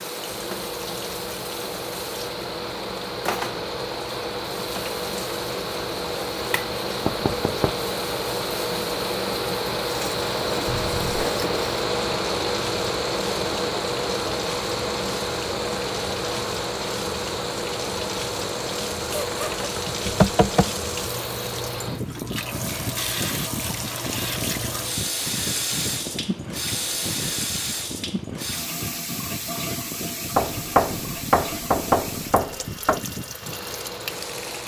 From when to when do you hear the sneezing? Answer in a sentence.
The sneezing can be heard from 10.7 to 11.3 s and from 19.1 to 20.0 s.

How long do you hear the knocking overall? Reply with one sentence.
The knocking can be heard for 4 seconds in total.